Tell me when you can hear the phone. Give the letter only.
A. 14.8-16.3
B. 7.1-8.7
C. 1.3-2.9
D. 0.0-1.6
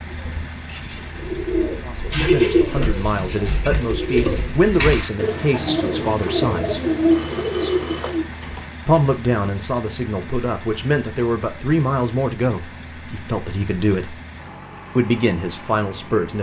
B.